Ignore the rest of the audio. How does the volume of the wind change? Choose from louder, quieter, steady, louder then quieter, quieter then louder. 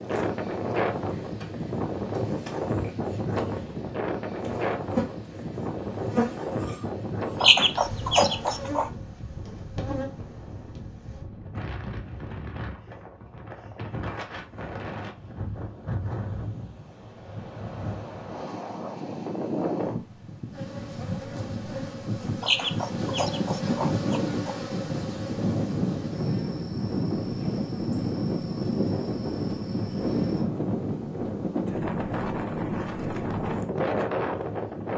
quieter then louder.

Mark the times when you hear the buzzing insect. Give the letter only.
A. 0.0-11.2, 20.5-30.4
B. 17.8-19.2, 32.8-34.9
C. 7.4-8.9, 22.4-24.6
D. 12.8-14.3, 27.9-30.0
A.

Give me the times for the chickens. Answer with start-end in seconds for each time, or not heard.
7.4-8.9, 22.4-24.6.